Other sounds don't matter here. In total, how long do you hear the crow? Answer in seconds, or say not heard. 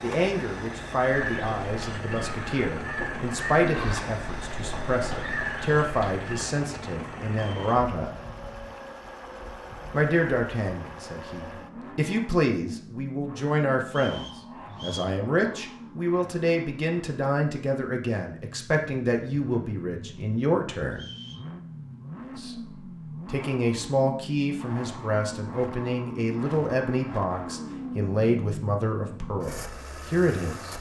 5 s.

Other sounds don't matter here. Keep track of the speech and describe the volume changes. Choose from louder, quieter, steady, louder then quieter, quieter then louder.
steady.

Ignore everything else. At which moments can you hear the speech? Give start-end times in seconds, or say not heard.
0.0-8.2, 9.9-21.1, 22.4-30.7.